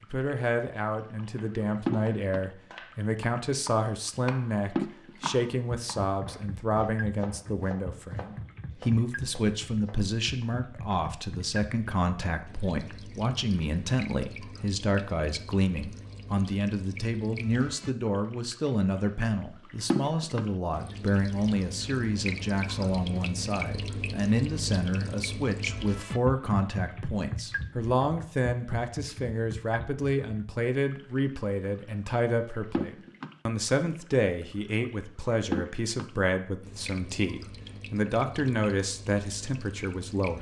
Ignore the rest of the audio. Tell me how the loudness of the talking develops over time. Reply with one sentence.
The volume of the talking stays about the same.